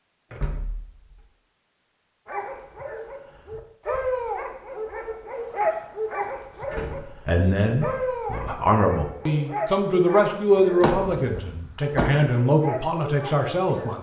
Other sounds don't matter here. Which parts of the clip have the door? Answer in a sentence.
You can hear the door from 0.3 to 1.2 s, from 6.2 to 7.0 s and from 10.8 to 12.2 s.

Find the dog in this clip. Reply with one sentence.
You can hear the dog from 2.2 to 13.9 s.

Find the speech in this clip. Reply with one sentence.
The speech can be heard from 7.2 to 13.9 s.